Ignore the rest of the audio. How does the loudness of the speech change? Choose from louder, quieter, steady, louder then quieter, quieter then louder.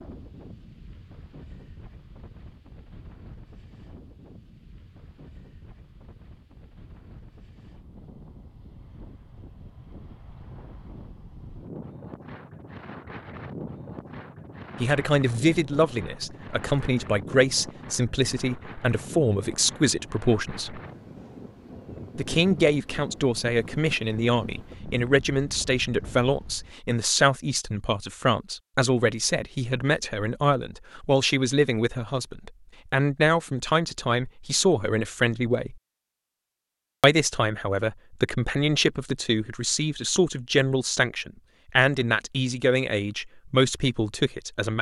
steady.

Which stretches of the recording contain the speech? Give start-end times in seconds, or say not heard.
14.8-20.8, 22.1-35.8, 37.0-44.7.